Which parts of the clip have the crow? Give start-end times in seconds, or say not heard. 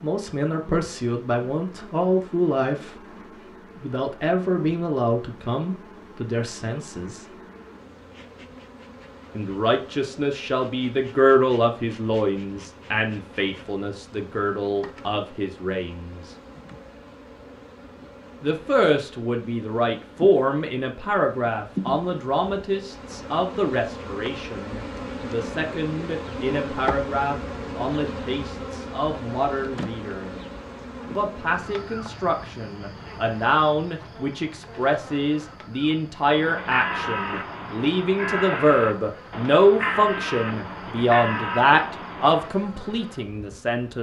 36.2-42.6.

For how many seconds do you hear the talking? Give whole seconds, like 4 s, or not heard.
38 s.